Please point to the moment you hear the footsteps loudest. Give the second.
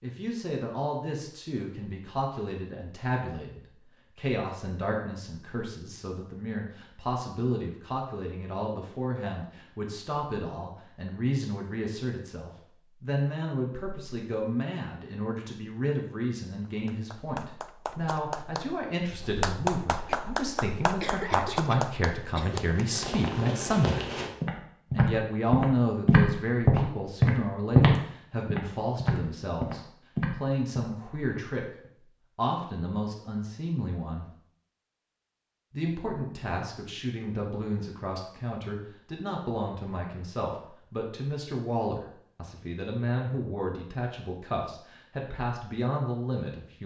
28 s.